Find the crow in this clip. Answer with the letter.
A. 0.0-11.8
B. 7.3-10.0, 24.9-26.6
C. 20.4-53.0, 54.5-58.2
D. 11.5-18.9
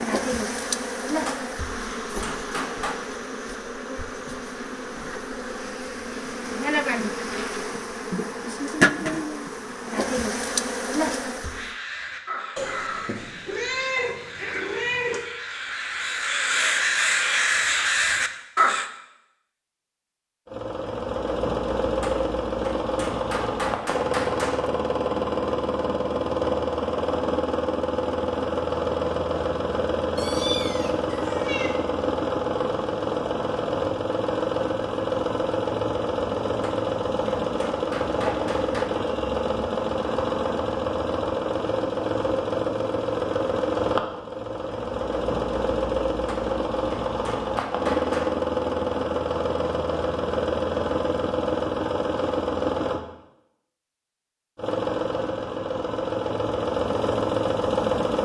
D.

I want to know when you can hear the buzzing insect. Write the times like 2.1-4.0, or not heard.
0.0-11.8.